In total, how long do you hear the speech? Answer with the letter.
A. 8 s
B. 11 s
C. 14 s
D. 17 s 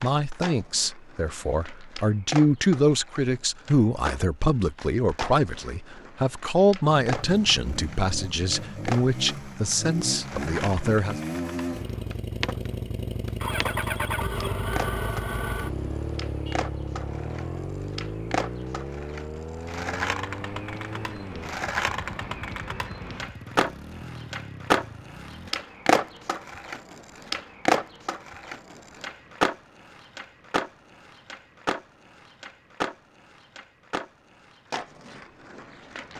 B.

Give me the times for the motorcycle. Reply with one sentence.
The motorcycle can be heard from 7.0 to 25.5 s.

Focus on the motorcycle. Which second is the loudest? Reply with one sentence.
The volume of the motorcycle peaks at 14 seconds.